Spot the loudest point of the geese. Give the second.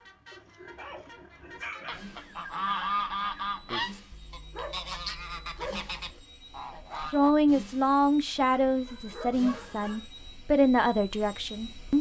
3 s.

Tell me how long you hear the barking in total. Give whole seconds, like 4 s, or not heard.
5 s.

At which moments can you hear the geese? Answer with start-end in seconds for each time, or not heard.
1.8-7.3.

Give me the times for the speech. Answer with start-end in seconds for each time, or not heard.
7.0-11.9.